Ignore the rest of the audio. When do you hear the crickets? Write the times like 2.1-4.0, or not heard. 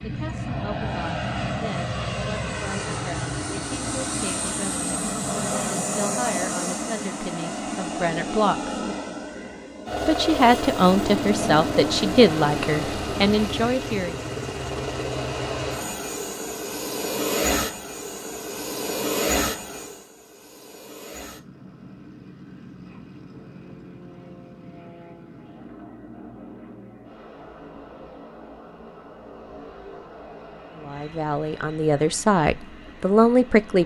not heard.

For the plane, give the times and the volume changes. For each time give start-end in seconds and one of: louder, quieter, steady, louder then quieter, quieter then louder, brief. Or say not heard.
0.0-33.8 quieter.